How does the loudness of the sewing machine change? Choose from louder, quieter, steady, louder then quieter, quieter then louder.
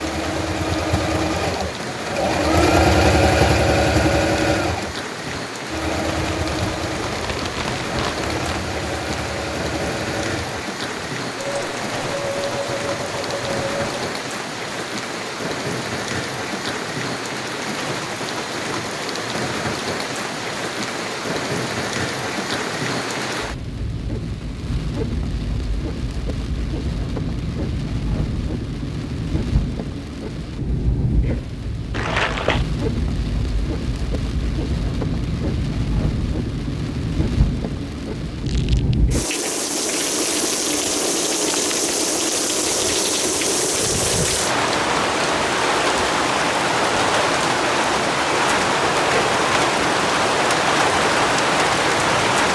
quieter.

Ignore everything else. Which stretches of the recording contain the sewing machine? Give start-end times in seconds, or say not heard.
0.0-14.1.